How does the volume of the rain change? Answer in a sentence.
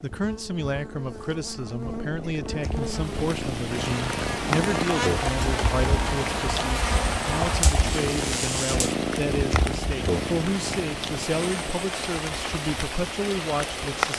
The volume of the rain stays about the same.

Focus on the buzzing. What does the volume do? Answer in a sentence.
The loudness of the buzzing goes up.